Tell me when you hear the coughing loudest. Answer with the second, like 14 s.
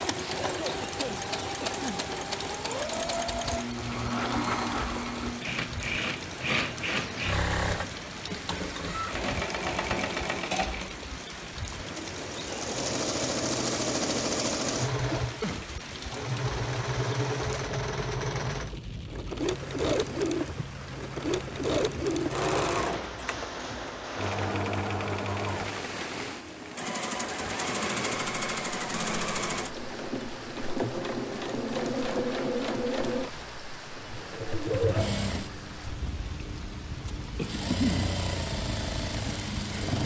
38 s.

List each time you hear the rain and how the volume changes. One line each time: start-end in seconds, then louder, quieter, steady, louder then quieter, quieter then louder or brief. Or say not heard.
0.0-40.0 steady.